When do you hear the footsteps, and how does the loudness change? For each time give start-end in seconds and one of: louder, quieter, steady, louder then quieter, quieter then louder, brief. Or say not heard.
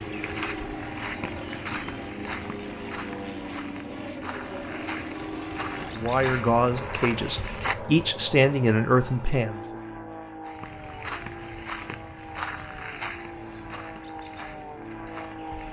0.0-7.8 quieter then louder
10.4-15.6 quieter.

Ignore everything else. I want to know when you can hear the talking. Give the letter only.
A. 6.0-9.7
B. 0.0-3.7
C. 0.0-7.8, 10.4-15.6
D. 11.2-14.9
A.